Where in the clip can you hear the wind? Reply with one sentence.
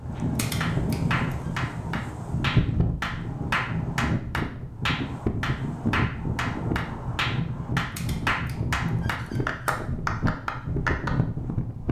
You can hear the wind from 0.0 to 11.8 s.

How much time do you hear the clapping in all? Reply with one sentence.
The clapping can be heard for 11 seconds in total.